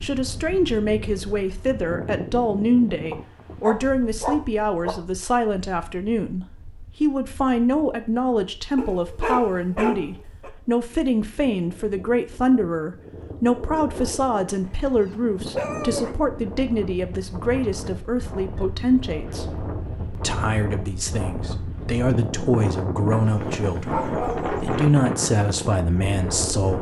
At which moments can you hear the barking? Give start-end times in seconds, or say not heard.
3.1-5.0, 8.8-10.5, 14.4-16.1, 23.1-24.8.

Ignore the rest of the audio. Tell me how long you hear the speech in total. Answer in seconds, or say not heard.
26 s.